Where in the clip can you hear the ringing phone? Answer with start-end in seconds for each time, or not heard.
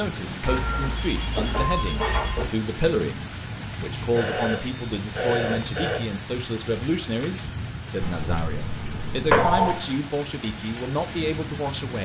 0.4-2.5, 4.2-6.0, 8.0-9.8.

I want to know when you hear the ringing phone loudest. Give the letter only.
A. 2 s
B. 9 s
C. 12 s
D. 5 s
B.